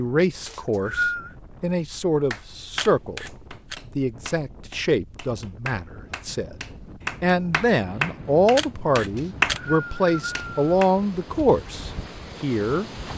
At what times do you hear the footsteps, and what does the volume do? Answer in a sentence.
The footsteps can't be heard in this clip.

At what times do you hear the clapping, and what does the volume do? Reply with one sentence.
You can hear the clapping from 2.3 to 9.6 s, getting quieter then louder; and briefly from 10.3 to 10.9 s.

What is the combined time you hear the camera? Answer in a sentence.
The camera can be heard for 2 seconds in total.